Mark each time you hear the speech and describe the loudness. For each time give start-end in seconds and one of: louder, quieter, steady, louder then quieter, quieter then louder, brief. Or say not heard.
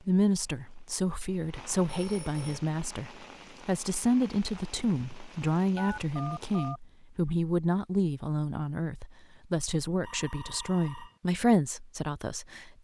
0.1-12.7 steady.